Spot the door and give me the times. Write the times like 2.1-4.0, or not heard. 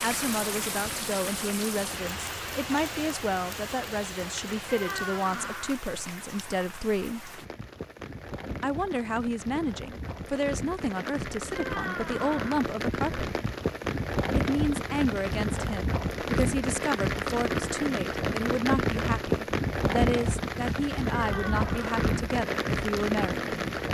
4.7-5.8, 11.6-12.6, 21.1-22.2.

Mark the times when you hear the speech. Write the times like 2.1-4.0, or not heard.
0.0-7.3, 8.6-13.3, 14.3-23.6.